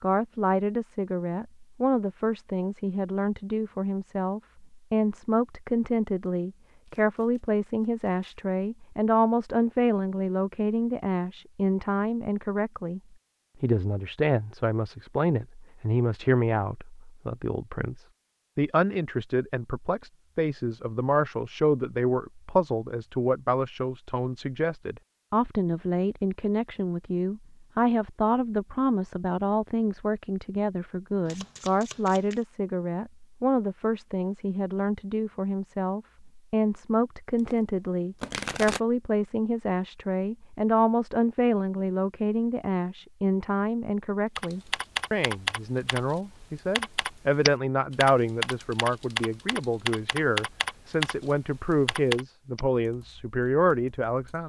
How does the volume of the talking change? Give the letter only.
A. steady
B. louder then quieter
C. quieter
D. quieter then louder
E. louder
A.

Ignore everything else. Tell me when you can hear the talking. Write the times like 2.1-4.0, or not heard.
0.0-13.0, 13.6-54.4.